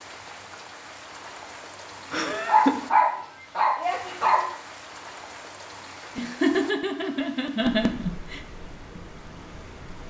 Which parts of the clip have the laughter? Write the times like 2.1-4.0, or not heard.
2.1-2.8, 6.2-8.4.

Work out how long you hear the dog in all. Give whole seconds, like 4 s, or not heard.
2 s.